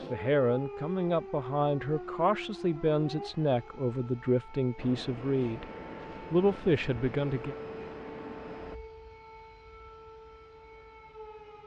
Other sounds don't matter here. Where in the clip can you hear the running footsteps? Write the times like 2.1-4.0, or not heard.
not heard.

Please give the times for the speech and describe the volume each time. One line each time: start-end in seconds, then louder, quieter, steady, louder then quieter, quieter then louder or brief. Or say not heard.
0.1-5.7 steady
6.3-7.5 brief.